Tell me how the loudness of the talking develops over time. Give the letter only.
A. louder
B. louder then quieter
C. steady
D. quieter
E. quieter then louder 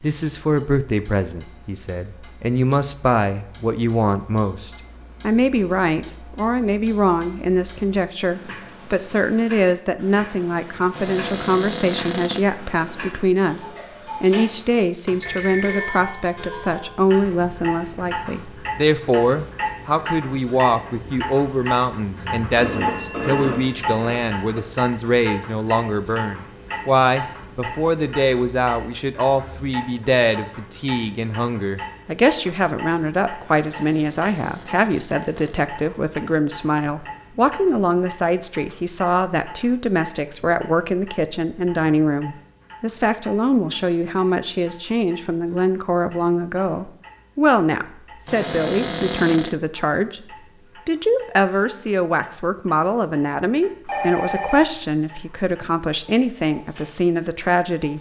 C.